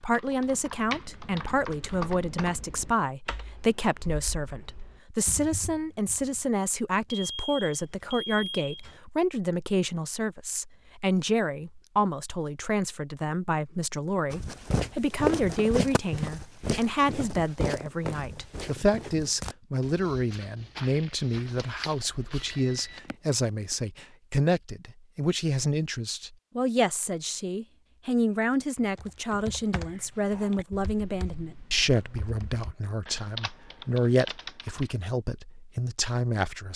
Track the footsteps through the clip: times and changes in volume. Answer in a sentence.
The footsteps can be heard from 14.3 to 23.0 s, getting quieter.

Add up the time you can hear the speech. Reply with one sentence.
You can hear the speech for 37 seconds altogether.